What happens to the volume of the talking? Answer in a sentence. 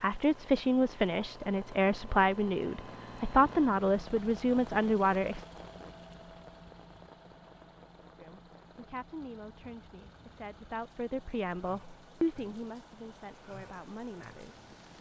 The loudness of the talking goes down.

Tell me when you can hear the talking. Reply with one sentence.
You can hear the talking from 0.0 to 5.5 s and from 8.2 to 14.7 s.